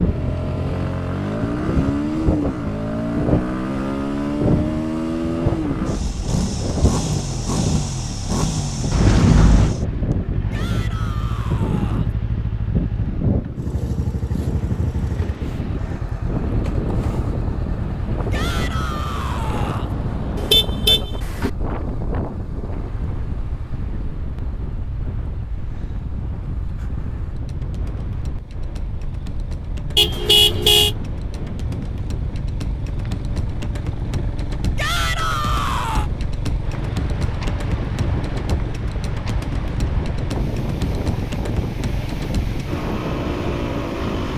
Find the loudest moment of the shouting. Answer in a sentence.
The volume of the shouting peaks at 35 seconds.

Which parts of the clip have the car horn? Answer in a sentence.
You can hear the car horn from 8.9 to 9.8 s, from 20.4 to 21.5 s and from 29.9 to 30.9 s.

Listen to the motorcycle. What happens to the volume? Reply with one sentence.
The volume of the motorcycle goes down, then up.